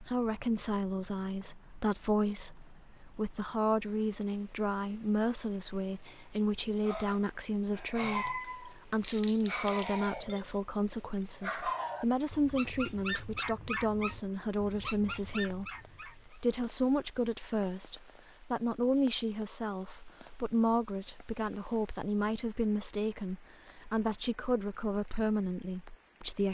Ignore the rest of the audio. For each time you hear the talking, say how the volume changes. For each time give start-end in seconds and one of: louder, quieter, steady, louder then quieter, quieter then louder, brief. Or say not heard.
0.0-26.4 steady.